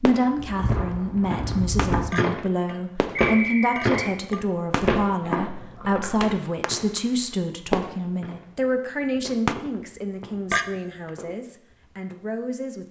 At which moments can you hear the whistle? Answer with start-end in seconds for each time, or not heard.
3.1-4.2.